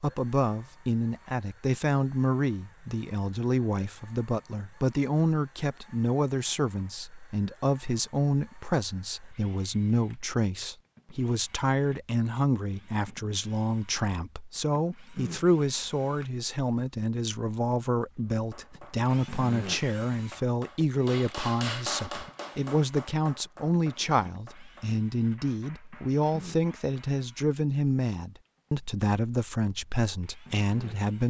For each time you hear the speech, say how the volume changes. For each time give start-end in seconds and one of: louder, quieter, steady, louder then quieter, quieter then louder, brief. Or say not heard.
0.0-31.2 steady.